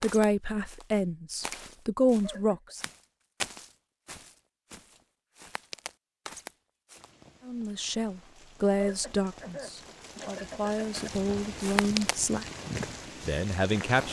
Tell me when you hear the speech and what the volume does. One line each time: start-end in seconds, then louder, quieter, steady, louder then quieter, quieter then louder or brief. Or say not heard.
0.0-2.8 brief
7.5-12.4 quieter then louder
13.2-14.0 brief.